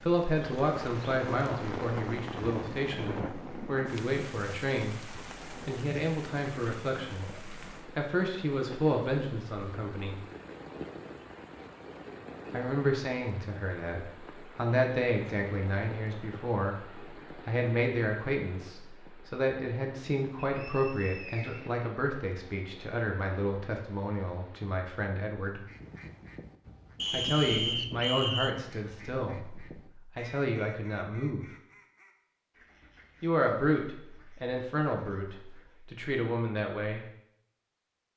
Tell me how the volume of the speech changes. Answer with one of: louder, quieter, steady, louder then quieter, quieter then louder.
steady.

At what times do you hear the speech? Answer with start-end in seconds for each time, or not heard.
0.0-10.2, 12.5-25.6, 27.1-31.4, 33.2-37.0.